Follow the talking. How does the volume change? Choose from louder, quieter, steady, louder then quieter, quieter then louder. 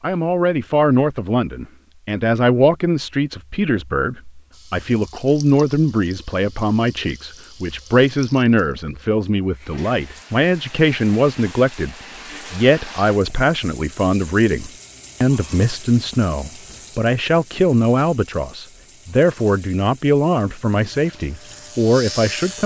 steady.